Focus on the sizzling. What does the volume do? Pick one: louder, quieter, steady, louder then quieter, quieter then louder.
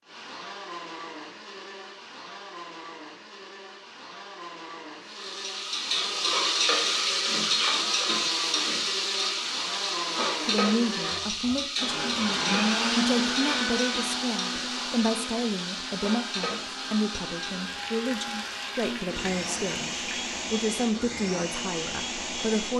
quieter.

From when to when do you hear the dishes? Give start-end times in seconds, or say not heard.
not heard.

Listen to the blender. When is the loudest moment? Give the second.
13 s.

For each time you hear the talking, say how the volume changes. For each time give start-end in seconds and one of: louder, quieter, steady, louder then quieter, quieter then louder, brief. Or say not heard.
10.4-22.7 steady.